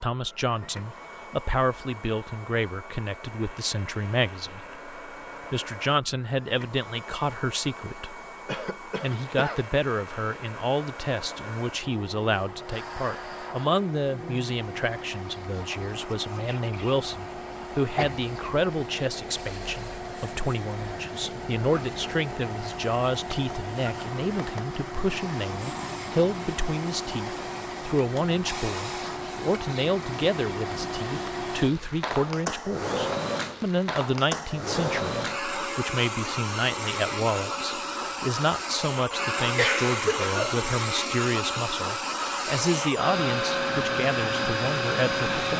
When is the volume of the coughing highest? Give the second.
40 s.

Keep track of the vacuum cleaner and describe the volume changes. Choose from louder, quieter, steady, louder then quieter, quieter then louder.
louder.